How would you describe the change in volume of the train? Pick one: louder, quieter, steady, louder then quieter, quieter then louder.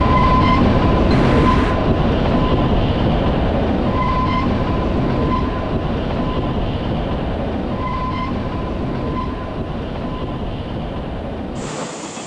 quieter.